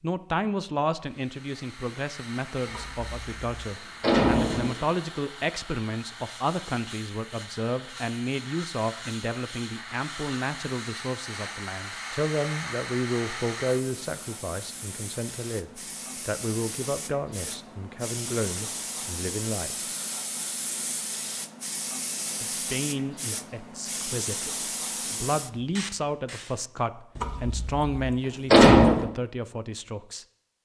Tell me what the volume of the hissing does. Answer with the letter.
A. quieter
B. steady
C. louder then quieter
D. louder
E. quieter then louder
D.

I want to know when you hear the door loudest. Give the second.
29 s.